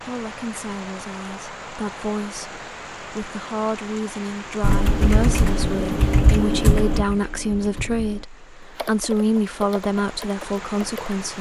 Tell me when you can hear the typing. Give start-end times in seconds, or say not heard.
4.6-11.2.